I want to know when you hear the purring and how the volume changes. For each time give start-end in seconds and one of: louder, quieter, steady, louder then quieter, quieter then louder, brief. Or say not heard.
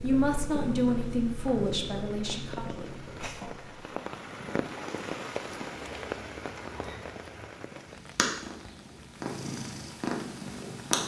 0.0-11.0 quieter then louder.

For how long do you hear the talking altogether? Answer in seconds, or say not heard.
3 s.